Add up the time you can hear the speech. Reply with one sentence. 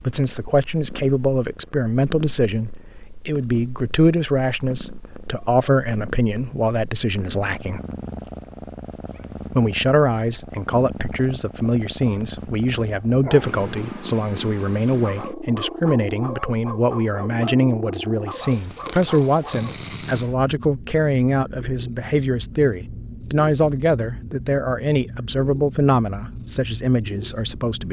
You can hear the speech for 26 seconds altogether.